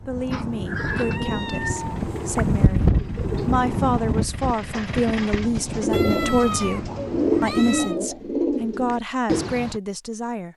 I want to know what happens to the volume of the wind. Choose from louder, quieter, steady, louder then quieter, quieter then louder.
louder then quieter.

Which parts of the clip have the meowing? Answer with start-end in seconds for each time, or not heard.
0.9-2.5, 5.9-8.0.